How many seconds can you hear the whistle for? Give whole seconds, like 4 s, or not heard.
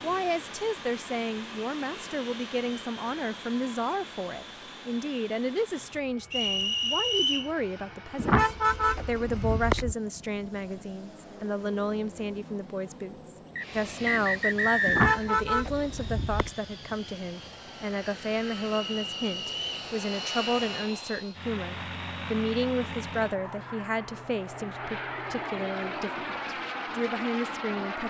4 s.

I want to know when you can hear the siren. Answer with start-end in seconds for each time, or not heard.
not heard.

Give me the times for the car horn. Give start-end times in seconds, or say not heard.
8.2-9.9, 14.8-16.5.